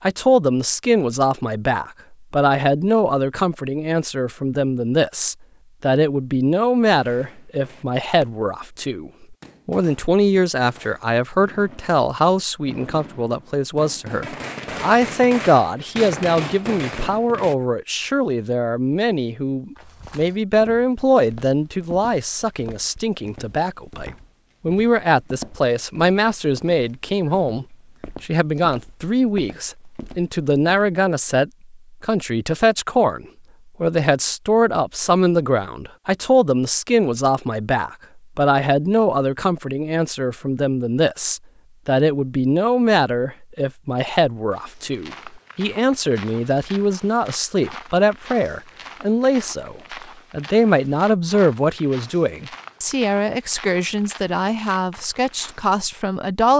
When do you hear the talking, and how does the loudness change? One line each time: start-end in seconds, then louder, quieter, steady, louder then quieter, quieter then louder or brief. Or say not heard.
0.0-56.5 steady.